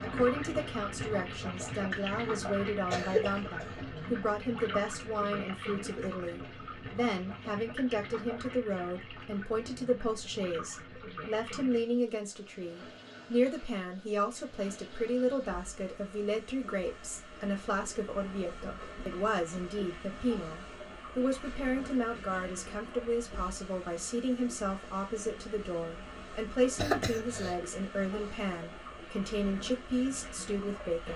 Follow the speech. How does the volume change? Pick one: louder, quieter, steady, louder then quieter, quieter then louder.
steady.